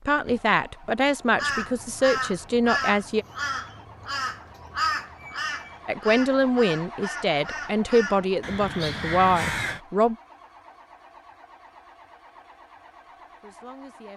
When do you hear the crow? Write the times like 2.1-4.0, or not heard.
1.3-9.8.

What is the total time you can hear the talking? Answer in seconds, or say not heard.
8 s.